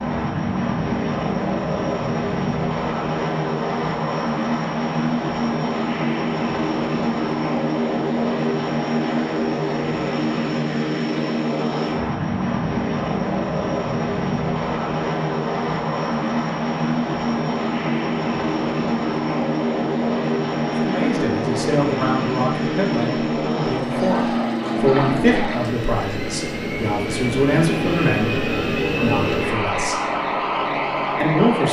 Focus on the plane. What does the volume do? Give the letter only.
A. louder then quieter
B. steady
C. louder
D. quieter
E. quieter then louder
B.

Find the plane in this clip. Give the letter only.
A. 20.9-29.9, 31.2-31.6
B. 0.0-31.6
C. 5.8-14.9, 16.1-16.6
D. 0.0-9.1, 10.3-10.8
B.